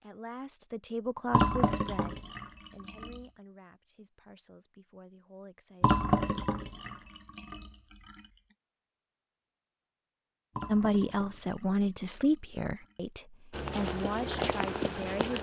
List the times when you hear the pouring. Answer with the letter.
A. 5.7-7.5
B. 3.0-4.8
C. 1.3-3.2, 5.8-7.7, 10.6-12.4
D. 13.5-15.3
C.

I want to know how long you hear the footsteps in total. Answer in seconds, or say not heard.
2 s.